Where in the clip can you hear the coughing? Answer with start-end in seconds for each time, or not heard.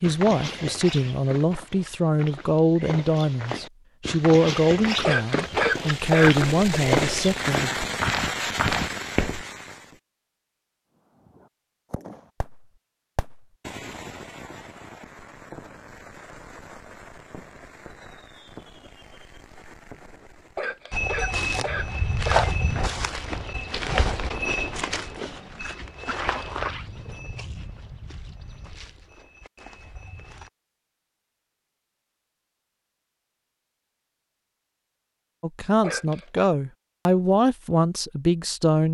5.0-6.8, 20.6-22.5, 35.8-36.5.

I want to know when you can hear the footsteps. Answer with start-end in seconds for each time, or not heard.
0.0-9.4, 20.9-30.5.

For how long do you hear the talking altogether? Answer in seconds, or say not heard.
11 s.